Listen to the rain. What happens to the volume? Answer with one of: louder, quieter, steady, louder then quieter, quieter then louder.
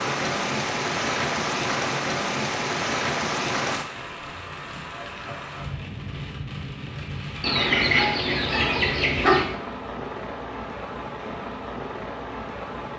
quieter.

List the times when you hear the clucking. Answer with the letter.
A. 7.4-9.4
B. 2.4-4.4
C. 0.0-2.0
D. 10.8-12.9
A.